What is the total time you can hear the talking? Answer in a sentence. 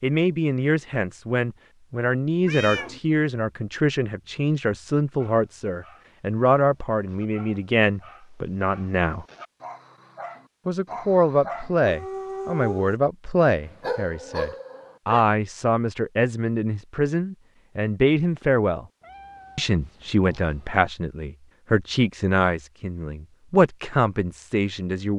You can hear the talking for 23 seconds altogether.